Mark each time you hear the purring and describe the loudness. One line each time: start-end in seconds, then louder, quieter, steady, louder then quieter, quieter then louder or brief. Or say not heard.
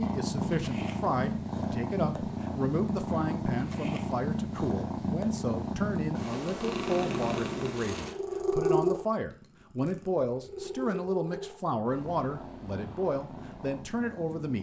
0.0-14.5 quieter.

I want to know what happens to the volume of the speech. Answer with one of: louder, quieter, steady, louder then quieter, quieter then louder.
steady.